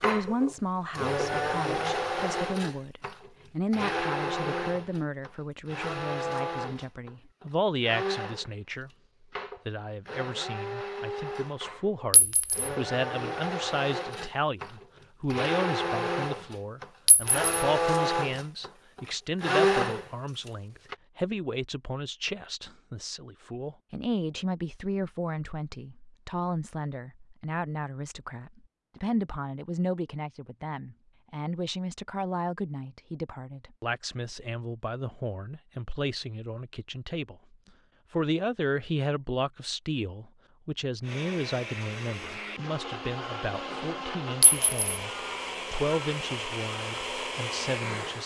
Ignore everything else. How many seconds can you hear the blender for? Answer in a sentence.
You can hear the blender for 28 seconds altogether.